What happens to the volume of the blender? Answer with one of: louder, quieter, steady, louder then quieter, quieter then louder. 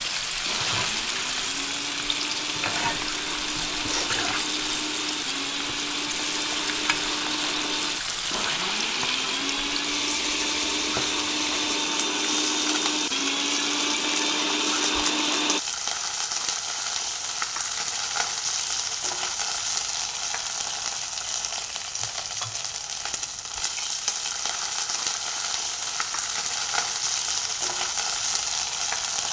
louder.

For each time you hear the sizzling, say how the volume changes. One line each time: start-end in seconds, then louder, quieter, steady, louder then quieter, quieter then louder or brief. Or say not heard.
0.0-29.2 steady.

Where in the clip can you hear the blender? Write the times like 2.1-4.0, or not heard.
0.2-15.6.